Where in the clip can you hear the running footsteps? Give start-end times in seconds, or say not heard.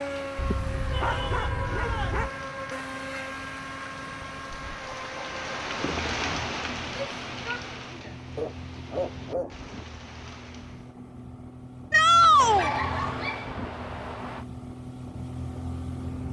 not heard.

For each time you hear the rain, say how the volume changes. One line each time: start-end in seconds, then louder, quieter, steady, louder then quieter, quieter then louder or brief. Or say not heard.
0.0-10.9 louder then quieter.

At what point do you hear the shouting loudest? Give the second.
12 s.